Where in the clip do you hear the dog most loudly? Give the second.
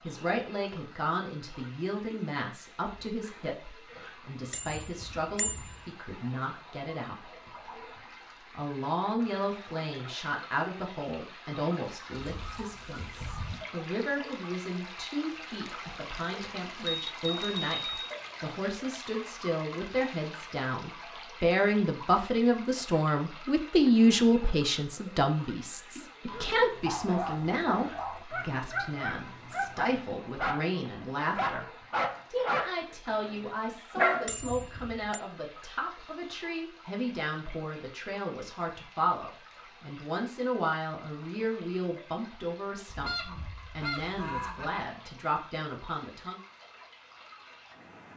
34 s.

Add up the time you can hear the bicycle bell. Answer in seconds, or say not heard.
4 s.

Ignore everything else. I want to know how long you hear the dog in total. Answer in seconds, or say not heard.
8 s.